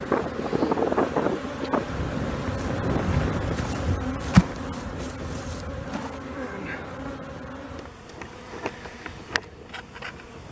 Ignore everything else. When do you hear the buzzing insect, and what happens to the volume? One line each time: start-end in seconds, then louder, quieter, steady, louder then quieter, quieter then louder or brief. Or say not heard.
0.0-10.4 louder then quieter.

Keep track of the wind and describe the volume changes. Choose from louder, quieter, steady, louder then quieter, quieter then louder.
quieter.